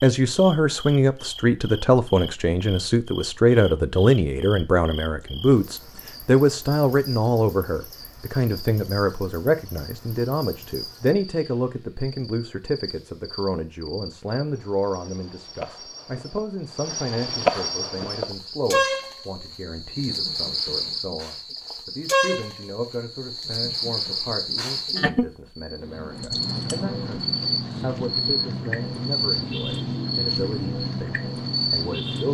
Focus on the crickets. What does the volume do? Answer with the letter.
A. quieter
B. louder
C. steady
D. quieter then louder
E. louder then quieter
B.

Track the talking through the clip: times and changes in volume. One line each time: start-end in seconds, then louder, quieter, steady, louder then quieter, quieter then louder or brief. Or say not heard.
0.0-32.2 quieter.